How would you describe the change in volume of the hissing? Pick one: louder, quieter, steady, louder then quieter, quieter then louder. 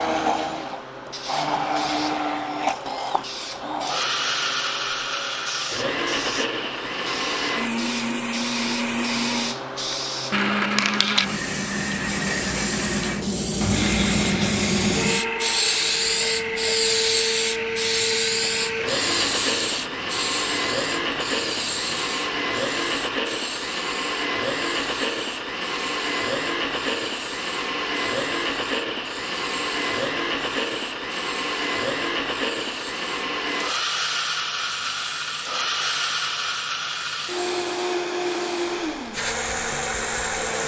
louder then quieter.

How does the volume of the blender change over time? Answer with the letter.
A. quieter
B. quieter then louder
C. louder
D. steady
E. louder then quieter
D.